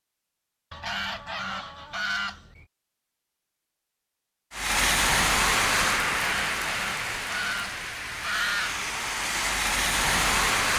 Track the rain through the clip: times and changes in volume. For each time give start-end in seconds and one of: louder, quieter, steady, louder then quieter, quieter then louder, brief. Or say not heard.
4.5-10.7 quieter then louder.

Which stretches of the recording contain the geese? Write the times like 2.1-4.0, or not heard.
0.7-2.6, 6.2-8.8.